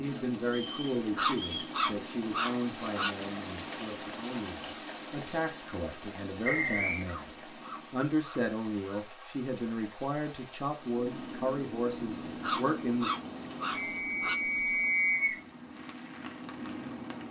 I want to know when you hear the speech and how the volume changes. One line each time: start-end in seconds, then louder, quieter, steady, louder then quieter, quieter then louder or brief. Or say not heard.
0.0-13.1 quieter then louder.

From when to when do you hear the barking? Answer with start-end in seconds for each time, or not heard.
1.1-3.1, 7.0-9.0, 12.4-14.4.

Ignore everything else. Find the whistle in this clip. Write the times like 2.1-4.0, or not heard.
0.5-1.8, 6.4-7.0, 13.9-15.4.